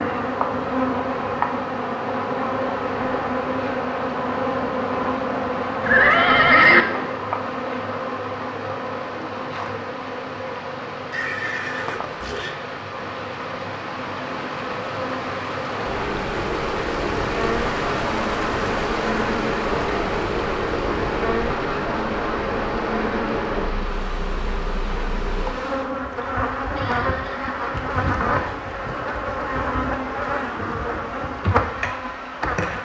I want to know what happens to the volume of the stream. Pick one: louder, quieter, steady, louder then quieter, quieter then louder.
louder then quieter.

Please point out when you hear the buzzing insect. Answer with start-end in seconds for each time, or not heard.
0.0-32.7.